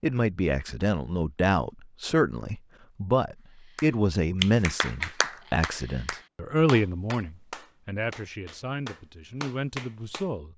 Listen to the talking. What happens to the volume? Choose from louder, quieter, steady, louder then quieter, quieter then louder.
quieter.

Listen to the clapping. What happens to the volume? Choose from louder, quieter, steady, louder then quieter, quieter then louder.
quieter then louder.